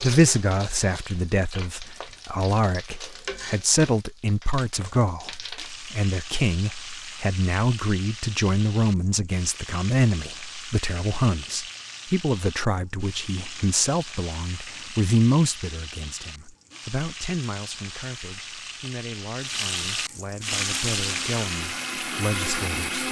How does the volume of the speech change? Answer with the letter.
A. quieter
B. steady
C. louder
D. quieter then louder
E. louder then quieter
A.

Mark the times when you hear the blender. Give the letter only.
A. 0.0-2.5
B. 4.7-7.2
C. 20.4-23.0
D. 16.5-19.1
C.